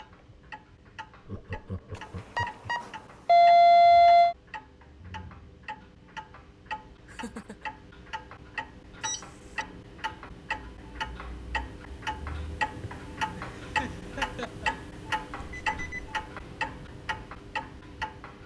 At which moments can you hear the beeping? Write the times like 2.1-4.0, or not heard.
2.4-4.3, 9.0-9.7, 15.3-16.1.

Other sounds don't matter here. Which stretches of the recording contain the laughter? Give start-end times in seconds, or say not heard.
1.2-2.6, 7.0-7.7, 13.3-14.7.